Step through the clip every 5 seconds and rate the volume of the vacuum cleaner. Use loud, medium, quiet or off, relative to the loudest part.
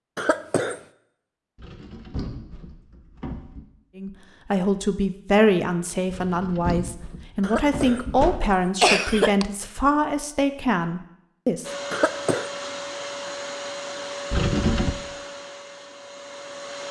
off, off, loud, medium.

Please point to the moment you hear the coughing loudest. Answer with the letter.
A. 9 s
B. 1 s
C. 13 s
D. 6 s
A.